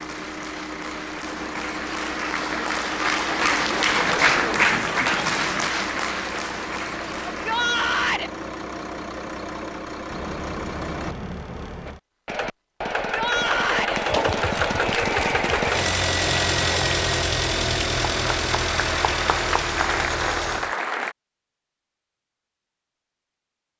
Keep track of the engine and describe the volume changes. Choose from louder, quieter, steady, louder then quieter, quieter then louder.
louder.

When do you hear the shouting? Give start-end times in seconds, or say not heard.
7.3-8.3, 12.9-14.0.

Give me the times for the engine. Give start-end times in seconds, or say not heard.
0.0-20.8.